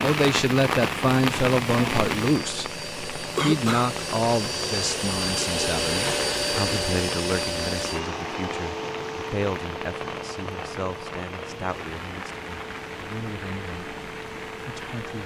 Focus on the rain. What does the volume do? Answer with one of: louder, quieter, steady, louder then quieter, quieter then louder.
quieter.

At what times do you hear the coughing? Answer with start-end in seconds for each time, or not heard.
3.4-3.9.